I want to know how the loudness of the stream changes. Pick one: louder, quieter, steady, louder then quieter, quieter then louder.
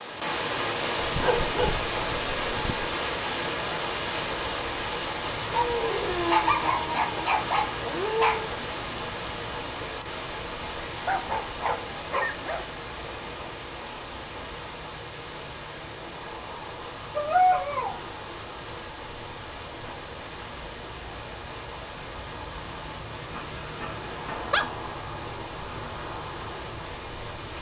quieter.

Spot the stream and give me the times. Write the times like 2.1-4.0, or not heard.
0.0-27.5.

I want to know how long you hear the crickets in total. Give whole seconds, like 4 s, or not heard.
not heard.